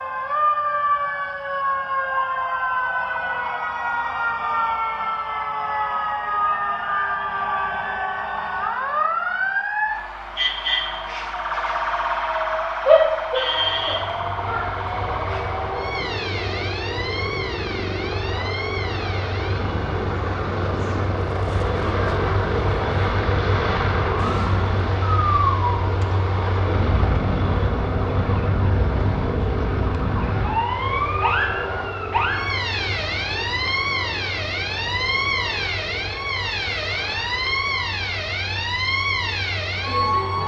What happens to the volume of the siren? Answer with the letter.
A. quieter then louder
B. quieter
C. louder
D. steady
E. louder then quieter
A.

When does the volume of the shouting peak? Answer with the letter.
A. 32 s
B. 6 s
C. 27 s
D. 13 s
D.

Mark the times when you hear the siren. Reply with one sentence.
You can hear the siren from 0.0 to 40.4 s.